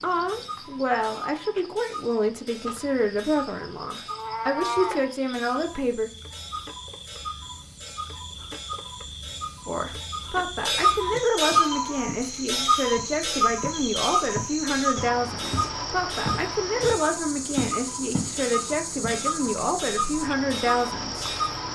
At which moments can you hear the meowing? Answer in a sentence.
The meowing can be heard from 4.1 to 5.0 s and from 11.6 to 12.2 s.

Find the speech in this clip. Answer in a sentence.
You can hear the speech from 0.0 to 6.1 s and from 9.7 to 21.3 s.